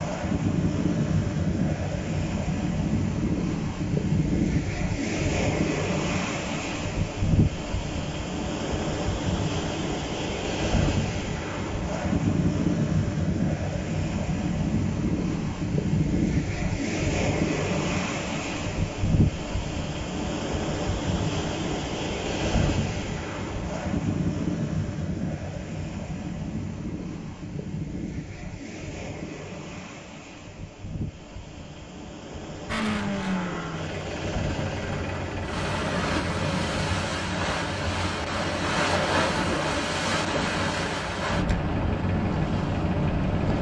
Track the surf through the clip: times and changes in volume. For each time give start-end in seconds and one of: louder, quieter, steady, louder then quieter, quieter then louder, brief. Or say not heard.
0.0-43.5 quieter then louder.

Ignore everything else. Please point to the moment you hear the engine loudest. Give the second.
33 s.